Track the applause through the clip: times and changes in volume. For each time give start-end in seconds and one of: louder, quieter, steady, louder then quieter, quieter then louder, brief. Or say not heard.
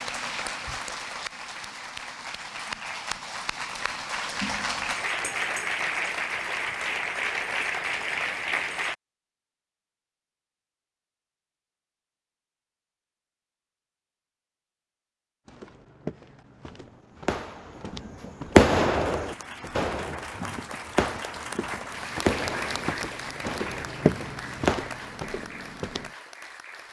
0.0-8.9 louder
18.9-26.8 louder then quieter.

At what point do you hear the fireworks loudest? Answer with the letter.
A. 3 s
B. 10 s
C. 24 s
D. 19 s
D.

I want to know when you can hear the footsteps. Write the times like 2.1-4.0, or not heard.
15.4-26.1.